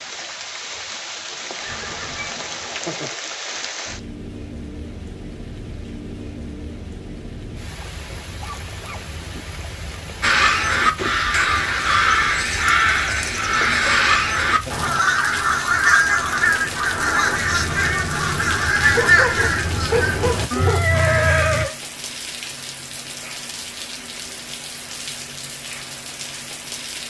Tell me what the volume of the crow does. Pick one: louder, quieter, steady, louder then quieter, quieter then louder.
steady.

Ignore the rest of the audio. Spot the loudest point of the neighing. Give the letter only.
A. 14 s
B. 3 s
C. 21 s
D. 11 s
C.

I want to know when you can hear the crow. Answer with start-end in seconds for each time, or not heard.
10.2-21.6.